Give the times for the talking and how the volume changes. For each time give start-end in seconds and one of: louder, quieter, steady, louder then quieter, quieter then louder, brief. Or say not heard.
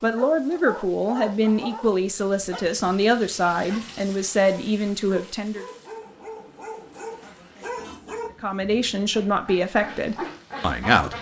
0.0-5.7 steady
8.4-11.1 brief.